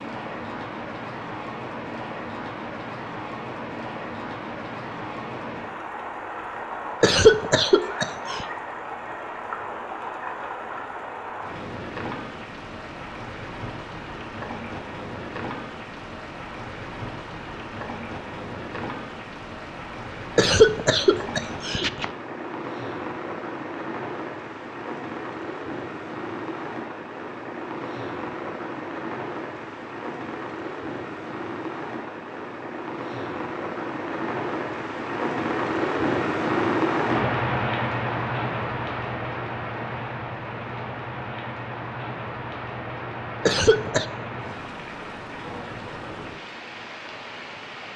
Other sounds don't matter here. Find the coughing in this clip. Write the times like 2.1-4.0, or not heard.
7.0-8.4, 20.4-22.1, 43.5-44.0.